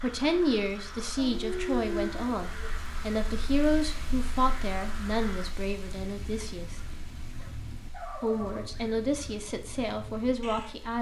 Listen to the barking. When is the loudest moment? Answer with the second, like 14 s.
2 s.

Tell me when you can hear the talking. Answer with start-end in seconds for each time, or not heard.
0.0-6.8, 8.2-10.9.